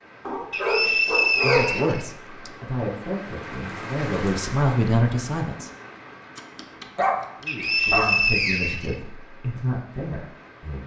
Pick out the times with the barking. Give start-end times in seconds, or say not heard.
0.2-2.0, 6.3-8.3.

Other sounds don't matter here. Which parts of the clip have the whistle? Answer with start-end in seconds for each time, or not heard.
0.5-2.5, 7.5-9.0.